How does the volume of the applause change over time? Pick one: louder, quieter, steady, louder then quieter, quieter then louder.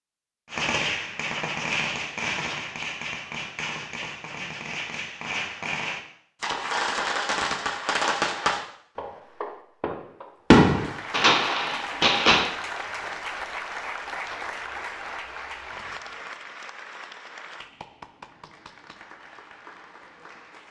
quieter.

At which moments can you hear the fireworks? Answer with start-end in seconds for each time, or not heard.
0.5-12.5.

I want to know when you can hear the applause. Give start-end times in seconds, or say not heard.
10.7-20.6.